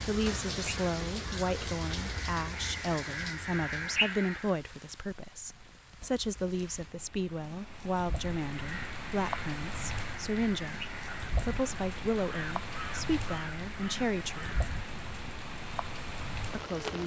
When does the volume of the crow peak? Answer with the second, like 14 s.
4 s.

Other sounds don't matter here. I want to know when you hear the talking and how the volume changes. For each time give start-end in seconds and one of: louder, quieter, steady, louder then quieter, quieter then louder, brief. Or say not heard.
0.1-14.6 steady
16.5-17.0 brief.